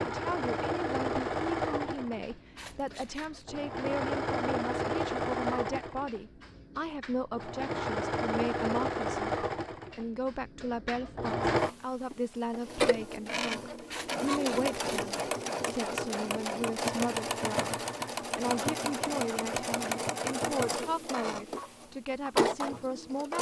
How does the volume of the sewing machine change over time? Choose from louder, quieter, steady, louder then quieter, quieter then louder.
steady.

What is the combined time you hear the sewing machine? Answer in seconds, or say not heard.
23 s.